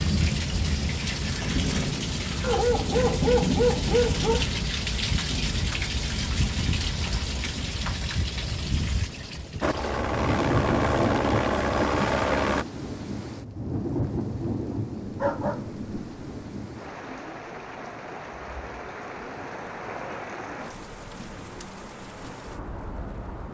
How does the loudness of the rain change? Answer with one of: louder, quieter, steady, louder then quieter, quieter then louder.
quieter.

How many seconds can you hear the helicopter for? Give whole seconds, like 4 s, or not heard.
3 s.